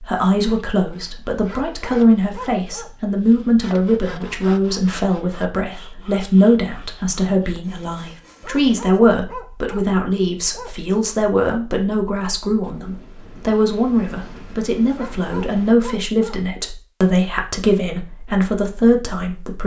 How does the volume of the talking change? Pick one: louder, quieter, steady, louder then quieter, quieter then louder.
steady.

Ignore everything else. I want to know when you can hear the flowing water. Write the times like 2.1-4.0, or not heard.
not heard.